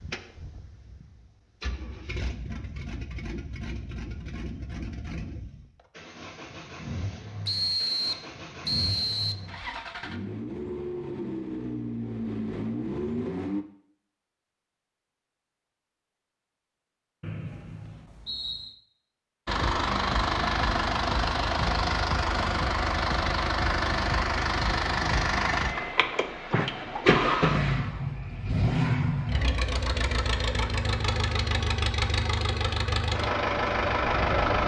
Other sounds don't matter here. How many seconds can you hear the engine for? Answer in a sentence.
The engine can be heard for 29 seconds in total.